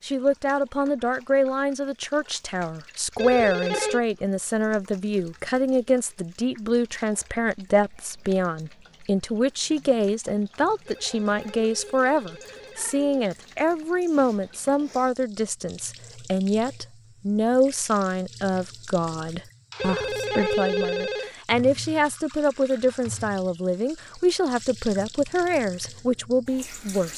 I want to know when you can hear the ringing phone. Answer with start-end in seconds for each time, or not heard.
3.1-4.0, 10.8-13.3, 19.8-21.3.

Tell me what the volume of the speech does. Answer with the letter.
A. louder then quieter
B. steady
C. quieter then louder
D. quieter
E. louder
B.